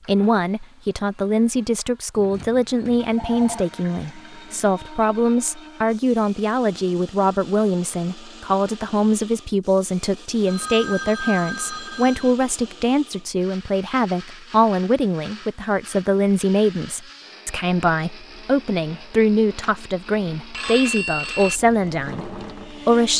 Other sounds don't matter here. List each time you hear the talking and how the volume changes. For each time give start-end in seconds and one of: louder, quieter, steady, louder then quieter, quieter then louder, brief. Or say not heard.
0.1-23.1 steady.